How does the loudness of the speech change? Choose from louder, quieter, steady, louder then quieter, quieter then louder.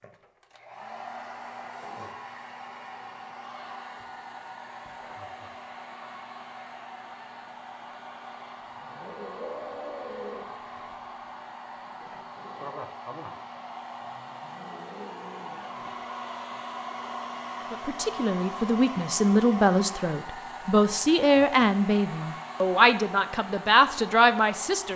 steady.